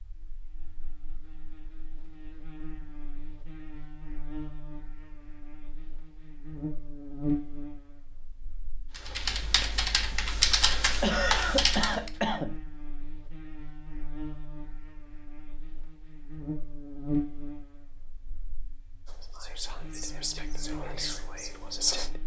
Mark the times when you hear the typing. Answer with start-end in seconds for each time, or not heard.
8.9-12.1.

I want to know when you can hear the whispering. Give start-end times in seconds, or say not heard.
19.1-22.2.